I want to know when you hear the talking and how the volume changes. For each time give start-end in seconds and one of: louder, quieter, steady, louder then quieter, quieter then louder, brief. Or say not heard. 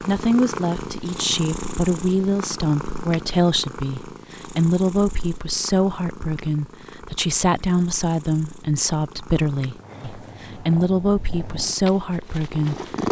0.0-12.8 steady.